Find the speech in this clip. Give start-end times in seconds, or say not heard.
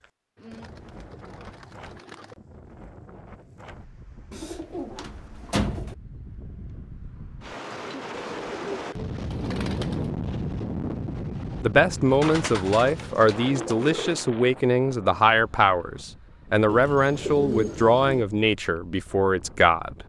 11.2-20.0.